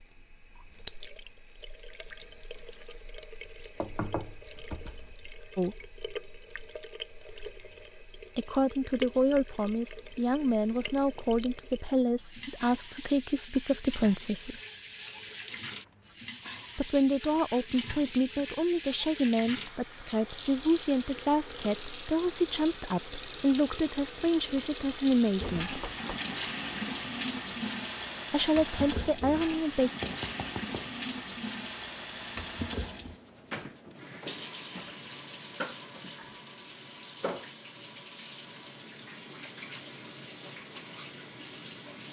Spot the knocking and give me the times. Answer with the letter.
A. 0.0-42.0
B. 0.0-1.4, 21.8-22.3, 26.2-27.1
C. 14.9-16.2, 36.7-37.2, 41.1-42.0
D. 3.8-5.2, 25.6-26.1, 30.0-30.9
D.